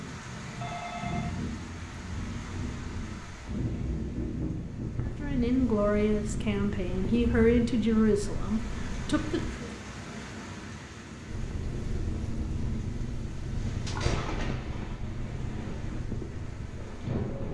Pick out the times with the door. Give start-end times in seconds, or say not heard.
not heard.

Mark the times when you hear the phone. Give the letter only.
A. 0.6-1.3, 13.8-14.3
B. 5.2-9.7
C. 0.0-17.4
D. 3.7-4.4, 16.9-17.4
A.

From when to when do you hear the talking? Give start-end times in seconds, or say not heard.
5.2-9.7.